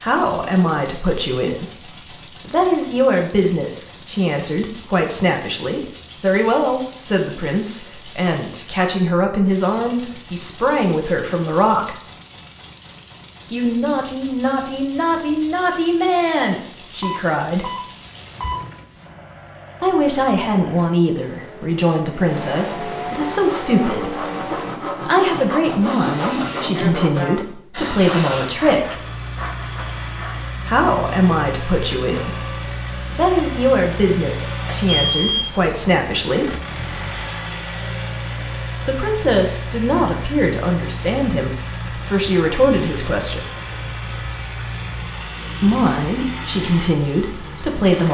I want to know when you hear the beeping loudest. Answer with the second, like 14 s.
35 s.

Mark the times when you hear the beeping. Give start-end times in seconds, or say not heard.
17.0-18.9, 34.9-35.5.